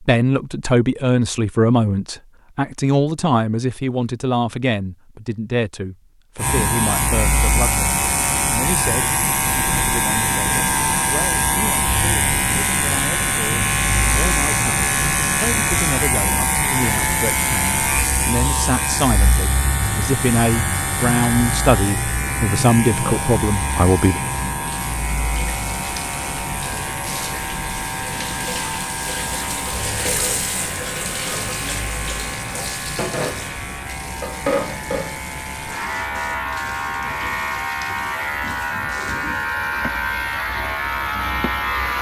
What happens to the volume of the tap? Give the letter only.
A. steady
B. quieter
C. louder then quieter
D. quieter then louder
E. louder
C.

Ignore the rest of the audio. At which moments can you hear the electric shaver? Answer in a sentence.
You can hear the electric shaver from 6.3 to 41.9 s.